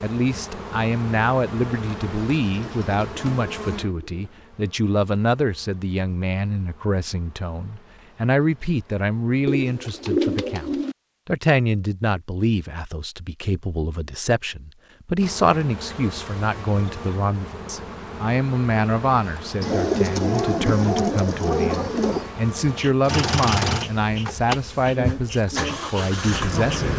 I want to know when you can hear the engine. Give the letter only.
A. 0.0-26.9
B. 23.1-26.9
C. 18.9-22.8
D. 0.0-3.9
B.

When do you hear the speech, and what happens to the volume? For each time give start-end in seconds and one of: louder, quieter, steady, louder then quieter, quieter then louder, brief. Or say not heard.
0.0-26.9 steady.